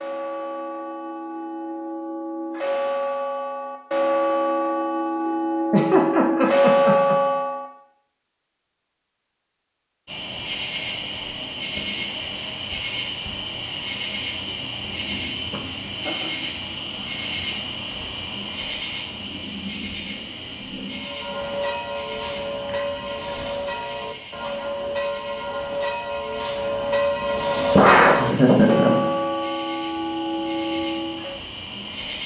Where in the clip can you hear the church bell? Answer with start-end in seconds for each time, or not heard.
0.0-7.7, 20.9-31.4.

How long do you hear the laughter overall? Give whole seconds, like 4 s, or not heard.
4 s.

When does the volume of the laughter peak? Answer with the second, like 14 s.
28 s.